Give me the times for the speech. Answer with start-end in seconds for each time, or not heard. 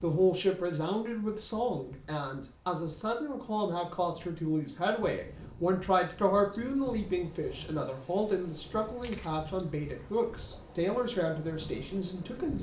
0.0-12.5.